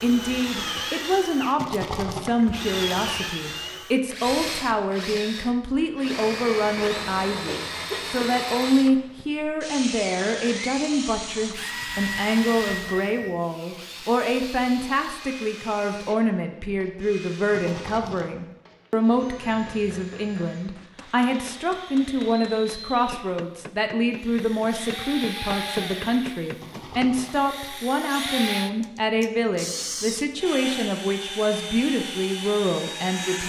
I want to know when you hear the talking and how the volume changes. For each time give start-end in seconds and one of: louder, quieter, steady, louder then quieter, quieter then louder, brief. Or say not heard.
0.0-33.4 steady.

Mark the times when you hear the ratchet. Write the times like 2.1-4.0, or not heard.
not heard.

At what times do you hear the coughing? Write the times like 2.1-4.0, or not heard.
7.5-8.3.